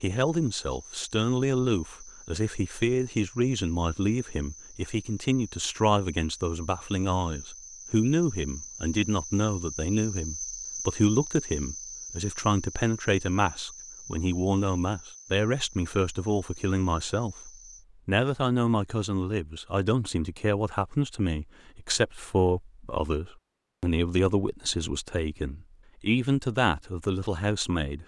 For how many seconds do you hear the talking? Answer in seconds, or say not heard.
28 s.